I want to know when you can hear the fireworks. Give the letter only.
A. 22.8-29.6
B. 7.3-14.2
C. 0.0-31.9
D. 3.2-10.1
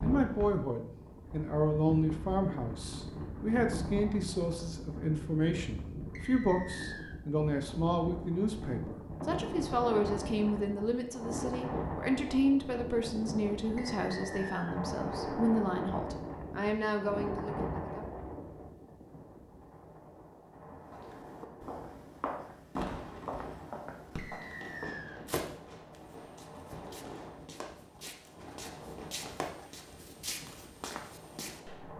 A.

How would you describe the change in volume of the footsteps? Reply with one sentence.
The loudness of the footsteps goes down, then up.